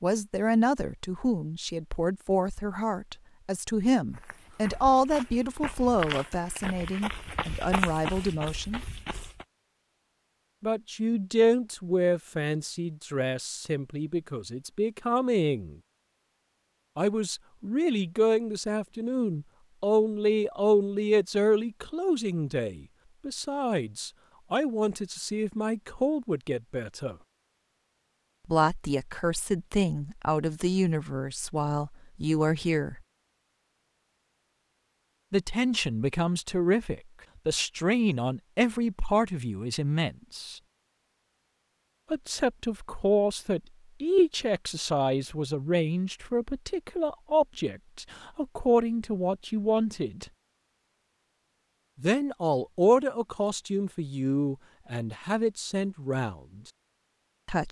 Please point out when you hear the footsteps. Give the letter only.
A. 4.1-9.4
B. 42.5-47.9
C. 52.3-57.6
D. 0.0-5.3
A.